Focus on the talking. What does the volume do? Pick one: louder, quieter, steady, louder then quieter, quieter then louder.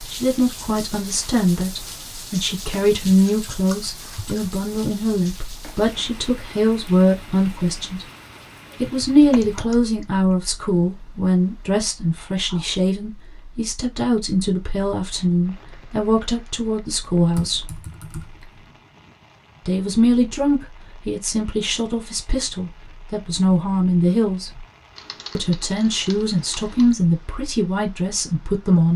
steady.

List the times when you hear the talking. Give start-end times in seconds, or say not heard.
0.0-8.1, 8.8-17.8, 19.6-24.5, 25.4-28.9.